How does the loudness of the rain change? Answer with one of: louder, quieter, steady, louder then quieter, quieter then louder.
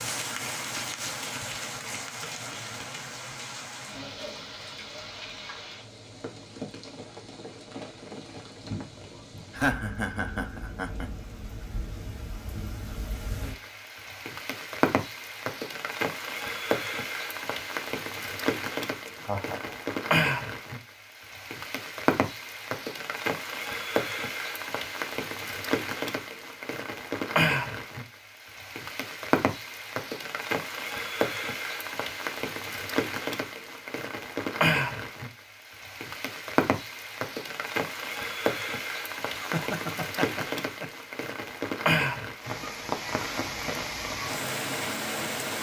louder.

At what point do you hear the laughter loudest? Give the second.
10 s.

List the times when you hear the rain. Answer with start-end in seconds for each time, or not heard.
0.0-45.5.